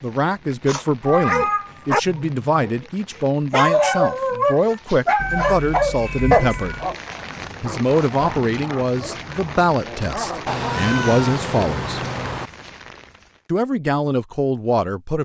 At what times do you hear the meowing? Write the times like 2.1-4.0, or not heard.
0.7-1.9, 5.2-7.0, 10.4-12.5.